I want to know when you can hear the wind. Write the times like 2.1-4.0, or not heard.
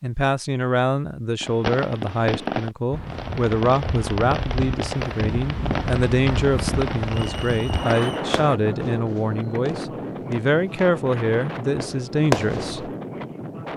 2.9-13.7.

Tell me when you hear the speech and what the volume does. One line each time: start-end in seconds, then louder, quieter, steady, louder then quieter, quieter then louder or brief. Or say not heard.
0.0-12.9 steady.